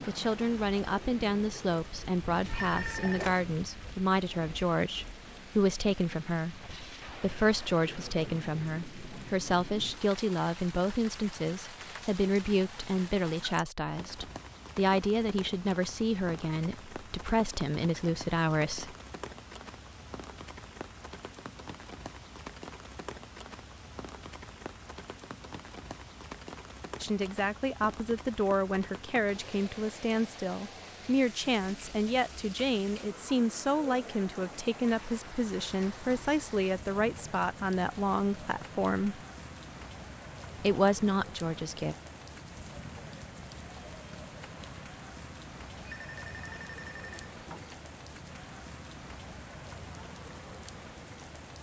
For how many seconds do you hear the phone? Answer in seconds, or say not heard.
3 s.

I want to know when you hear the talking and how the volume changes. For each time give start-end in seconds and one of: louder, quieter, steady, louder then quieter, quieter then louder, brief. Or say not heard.
0.1-18.9 steady
27.0-39.2 steady
40.6-42.0 brief.